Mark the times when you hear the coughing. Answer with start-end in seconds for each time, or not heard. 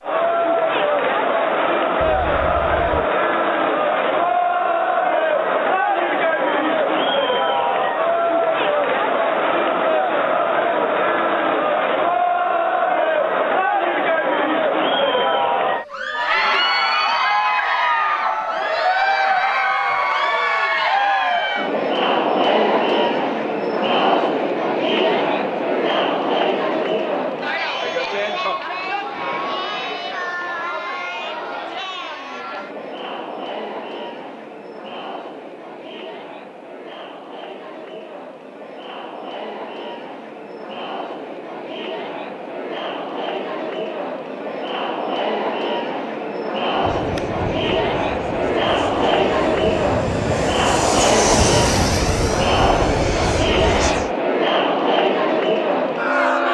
not heard.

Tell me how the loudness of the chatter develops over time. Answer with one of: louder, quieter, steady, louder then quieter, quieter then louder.
quieter then louder.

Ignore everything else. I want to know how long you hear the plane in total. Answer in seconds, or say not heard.
7 s.